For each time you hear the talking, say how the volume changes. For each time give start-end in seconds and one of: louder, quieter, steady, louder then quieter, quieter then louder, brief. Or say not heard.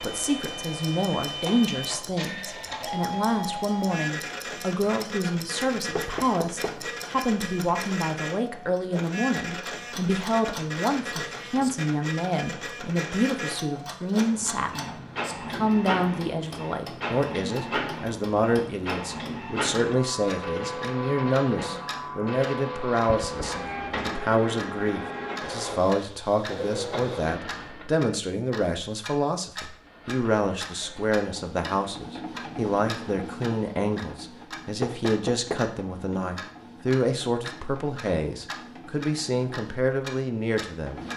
0.0-41.0 steady.